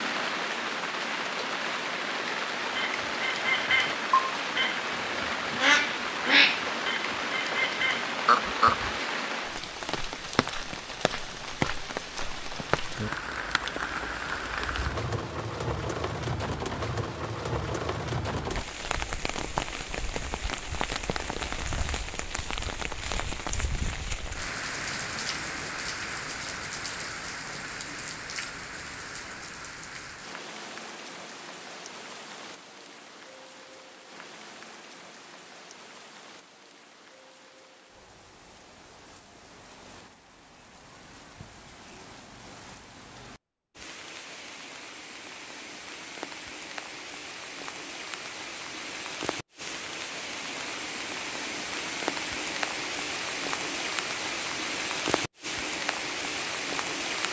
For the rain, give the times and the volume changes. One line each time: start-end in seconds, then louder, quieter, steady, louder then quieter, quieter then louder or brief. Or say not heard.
0.0-57.2 quieter then louder.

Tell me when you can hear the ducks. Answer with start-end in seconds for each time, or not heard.
2.7-8.9.